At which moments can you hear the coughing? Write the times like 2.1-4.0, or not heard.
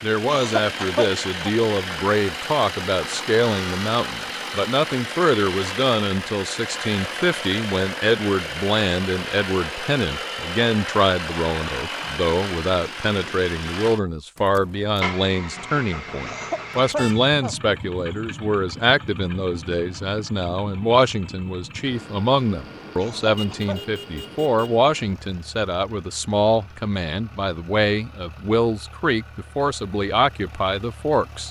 0.2-1.5, 16.2-17.6, 22.9-23.9.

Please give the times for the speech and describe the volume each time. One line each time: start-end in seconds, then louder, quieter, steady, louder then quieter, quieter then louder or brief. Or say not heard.
0.0-31.4 steady.